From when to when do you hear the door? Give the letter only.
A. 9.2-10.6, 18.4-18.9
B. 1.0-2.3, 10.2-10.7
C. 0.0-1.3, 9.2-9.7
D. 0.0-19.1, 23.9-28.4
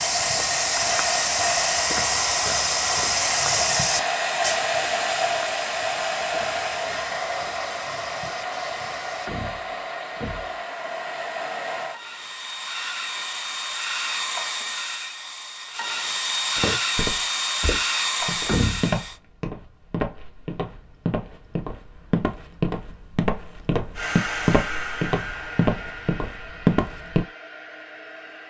A.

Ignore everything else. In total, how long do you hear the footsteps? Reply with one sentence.
The footsteps can be heard for 20 seconds in total.